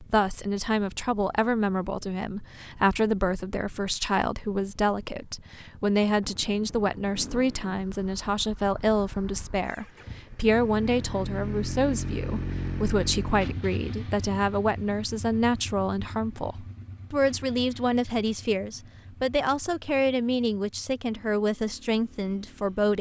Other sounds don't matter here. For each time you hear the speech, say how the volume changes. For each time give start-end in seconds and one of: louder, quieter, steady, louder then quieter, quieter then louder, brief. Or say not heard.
0.0-22.9 steady.